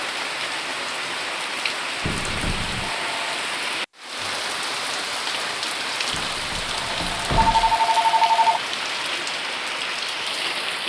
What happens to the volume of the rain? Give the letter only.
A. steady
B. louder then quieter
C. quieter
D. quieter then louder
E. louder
A.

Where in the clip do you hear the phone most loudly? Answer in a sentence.
The volume of the phone peaks at 8 seconds.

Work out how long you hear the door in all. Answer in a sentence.
You can hear the door for 3 seconds altogether.